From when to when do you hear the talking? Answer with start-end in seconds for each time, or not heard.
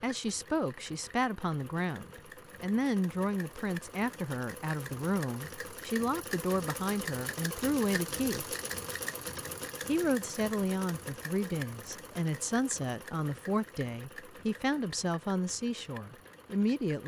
0.0-8.6, 9.8-17.0.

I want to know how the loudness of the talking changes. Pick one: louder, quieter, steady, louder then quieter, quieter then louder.
steady.